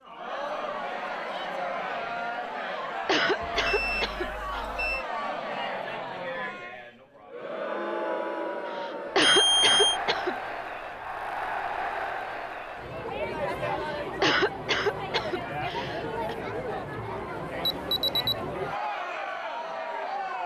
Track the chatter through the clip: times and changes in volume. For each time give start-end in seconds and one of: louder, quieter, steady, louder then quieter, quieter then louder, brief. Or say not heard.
0.0-20.4 steady.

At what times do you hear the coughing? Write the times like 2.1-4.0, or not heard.
2.6-4.7, 8.7-10.3, 13.8-16.4.